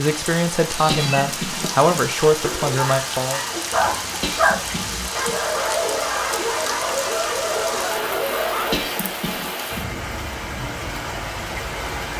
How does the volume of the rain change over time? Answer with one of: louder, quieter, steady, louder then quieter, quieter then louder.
steady.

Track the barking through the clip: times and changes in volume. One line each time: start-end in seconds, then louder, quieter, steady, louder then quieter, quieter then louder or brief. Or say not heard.
2.4-8.8 steady.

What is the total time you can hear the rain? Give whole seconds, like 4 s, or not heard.
12 s.